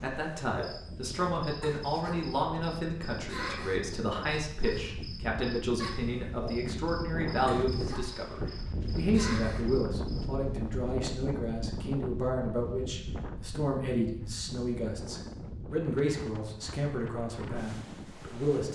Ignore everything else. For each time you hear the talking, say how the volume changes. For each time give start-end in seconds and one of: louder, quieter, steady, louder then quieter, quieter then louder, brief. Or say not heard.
0.0-18.7 steady.